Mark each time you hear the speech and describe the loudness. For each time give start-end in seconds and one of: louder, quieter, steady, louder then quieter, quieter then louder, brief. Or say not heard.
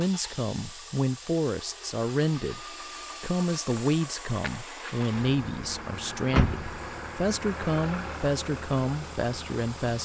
0.0-10.0 steady.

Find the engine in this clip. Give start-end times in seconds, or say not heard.
0.0-10.0.